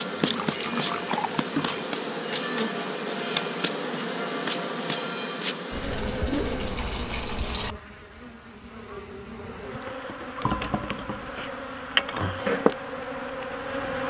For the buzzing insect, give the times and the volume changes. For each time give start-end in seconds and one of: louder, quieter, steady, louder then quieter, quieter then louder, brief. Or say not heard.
0.0-14.0 quieter then louder.